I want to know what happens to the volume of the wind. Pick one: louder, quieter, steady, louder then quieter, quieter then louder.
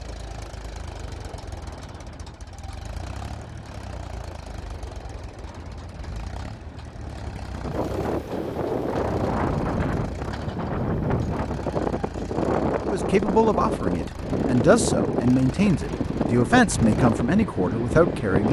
louder.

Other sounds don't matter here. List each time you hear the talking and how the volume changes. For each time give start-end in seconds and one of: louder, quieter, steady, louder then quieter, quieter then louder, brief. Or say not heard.
12.8-18.4 steady.